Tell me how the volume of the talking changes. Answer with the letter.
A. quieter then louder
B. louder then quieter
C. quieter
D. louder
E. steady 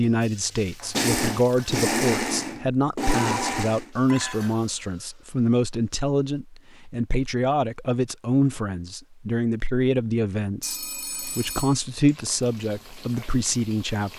E.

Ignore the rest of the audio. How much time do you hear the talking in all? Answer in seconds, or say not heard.
14 s.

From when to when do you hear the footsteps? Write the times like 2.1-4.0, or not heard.
not heard.